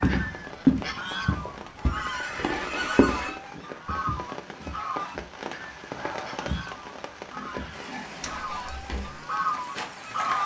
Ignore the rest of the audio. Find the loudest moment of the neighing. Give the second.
3 s.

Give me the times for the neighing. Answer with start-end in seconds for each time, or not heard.
1.8-3.3, 7.2-8.4.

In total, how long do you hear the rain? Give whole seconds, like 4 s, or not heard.
10 s.